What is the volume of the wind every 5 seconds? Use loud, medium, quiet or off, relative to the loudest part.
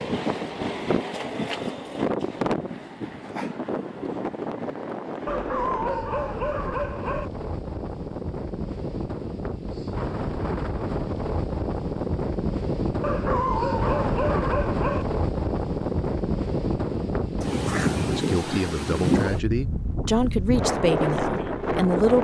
loud, medium, loud, loud, loud.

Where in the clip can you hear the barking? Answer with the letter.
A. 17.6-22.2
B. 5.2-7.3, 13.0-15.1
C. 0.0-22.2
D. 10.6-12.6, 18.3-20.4
B.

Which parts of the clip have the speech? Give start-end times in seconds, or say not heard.
17.6-22.2.